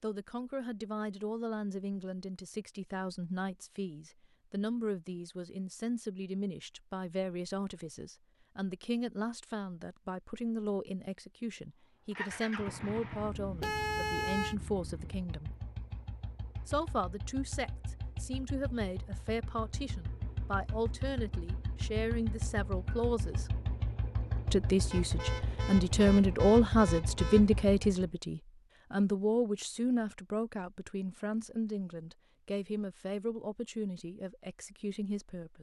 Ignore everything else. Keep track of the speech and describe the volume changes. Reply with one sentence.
The loudness of the speech goes up, then down.